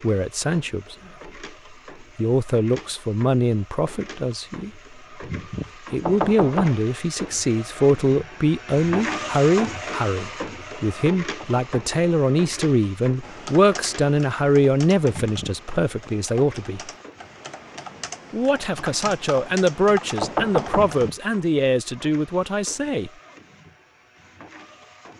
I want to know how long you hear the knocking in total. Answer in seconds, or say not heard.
2 s.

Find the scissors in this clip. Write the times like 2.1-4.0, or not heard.
not heard.